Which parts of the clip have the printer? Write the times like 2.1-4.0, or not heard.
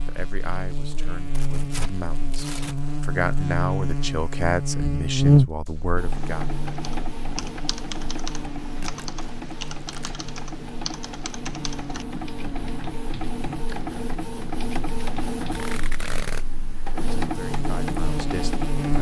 6.0-18.9.